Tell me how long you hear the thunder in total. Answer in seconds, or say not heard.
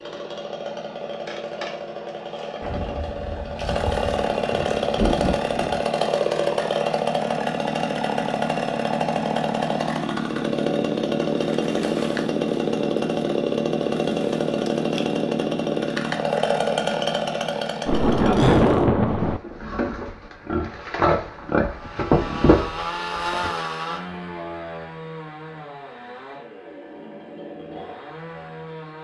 5 s.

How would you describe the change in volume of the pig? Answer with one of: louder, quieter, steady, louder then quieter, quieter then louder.
louder.